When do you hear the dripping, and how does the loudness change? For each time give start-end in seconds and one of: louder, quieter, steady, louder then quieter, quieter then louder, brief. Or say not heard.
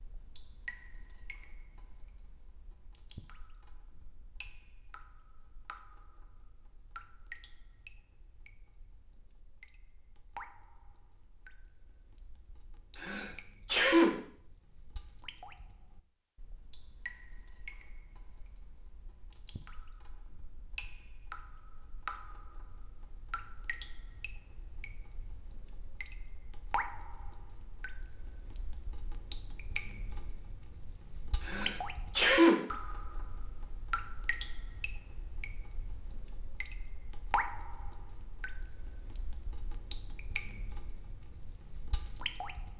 0.0-42.7 louder.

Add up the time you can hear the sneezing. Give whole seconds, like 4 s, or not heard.
2 s.